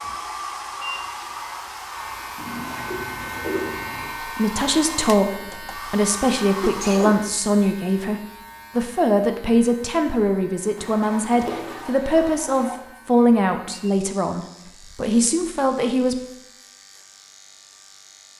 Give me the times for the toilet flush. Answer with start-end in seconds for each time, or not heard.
2.4-4.2, 10.8-12.8.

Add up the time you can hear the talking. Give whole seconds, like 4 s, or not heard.
12 s.